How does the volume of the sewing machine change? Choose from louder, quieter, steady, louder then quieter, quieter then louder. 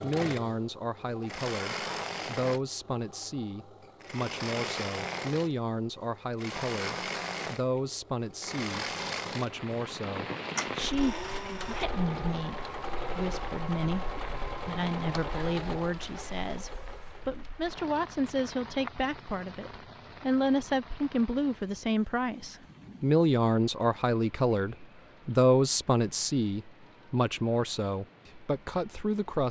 steady.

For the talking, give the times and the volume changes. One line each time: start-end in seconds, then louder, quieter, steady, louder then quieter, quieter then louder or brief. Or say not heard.
0.0-29.4 louder.